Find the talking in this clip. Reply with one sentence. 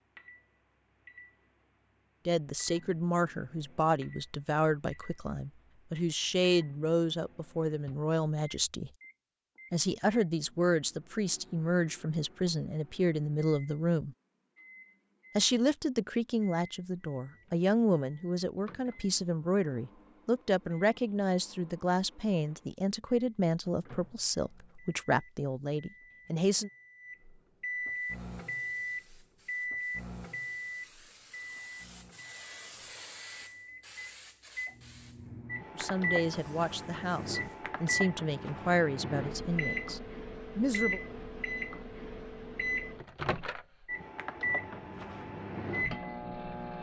You can hear the talking from 2.2 to 8.9 s, from 9.7 to 14.2 s, from 15.3 to 26.7 s and from 35.8 to 41.0 s.